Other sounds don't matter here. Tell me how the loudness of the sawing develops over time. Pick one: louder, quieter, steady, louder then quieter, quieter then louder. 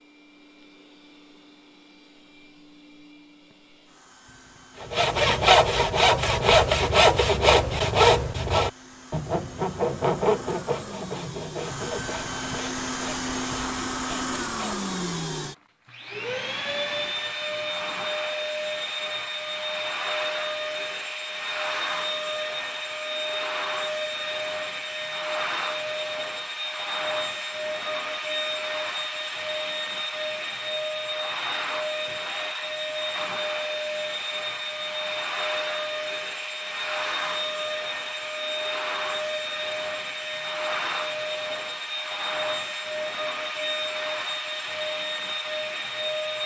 quieter.